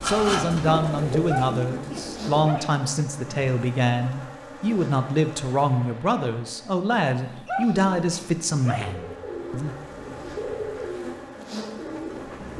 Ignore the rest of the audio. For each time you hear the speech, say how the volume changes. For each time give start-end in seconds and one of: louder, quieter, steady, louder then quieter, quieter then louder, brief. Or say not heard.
0.0-9.8 steady.